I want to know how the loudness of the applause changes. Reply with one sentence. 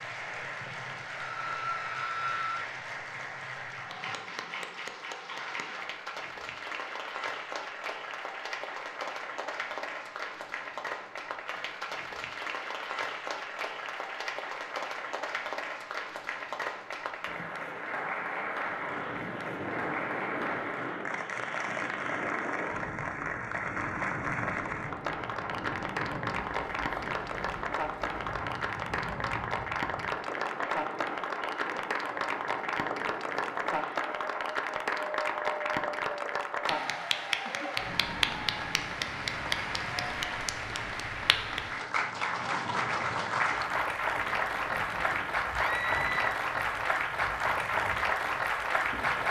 The loudness of the applause goes up.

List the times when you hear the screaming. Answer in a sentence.
The screaming can be heard from 1.1 to 2.7 s and from 45.5 to 46.3 s.